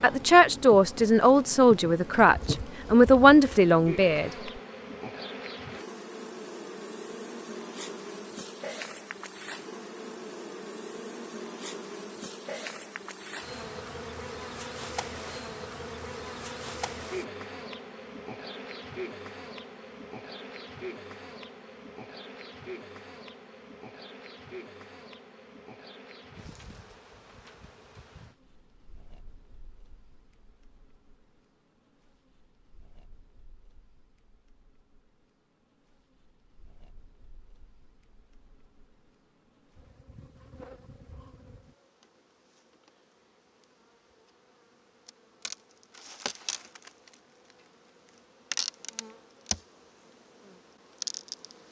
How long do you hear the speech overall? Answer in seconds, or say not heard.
4 s.